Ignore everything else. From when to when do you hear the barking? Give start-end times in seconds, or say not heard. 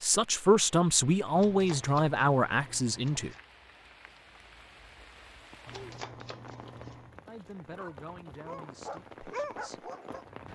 7.8-10.3.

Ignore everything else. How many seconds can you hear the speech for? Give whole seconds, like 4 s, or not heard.
6 s.